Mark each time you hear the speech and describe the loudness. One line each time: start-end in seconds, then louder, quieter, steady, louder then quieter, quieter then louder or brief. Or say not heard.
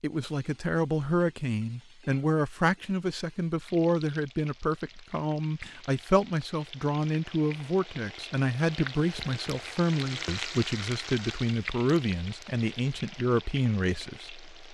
0.0-14.5 steady.